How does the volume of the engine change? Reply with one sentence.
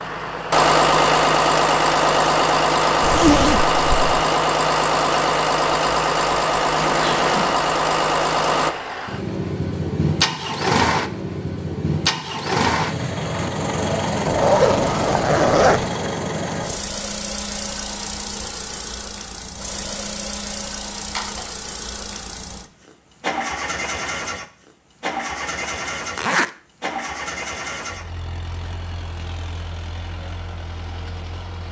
The volume of the engine goes down.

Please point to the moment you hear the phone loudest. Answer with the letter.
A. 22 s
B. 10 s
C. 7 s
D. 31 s
C.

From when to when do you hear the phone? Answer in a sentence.
You can hear the phone from 6.8 to 7.6 s and from 21.1 to 21.6 s.